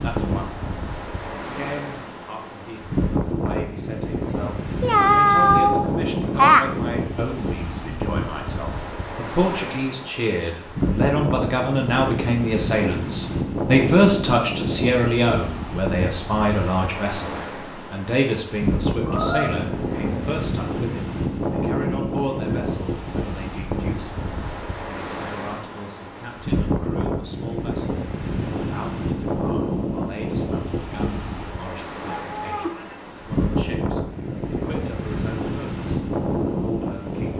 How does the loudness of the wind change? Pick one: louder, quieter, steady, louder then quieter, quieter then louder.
steady.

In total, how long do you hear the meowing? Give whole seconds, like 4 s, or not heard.
4 s.